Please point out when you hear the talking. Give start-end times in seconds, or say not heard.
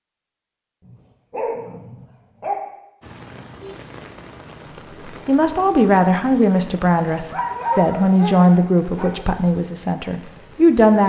5.0-11.0.